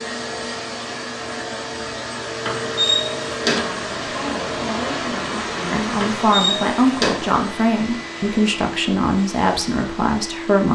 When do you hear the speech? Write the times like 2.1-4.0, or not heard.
3.5-10.7.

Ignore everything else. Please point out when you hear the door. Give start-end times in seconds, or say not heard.
2.4-3.6, 6.0-7.2.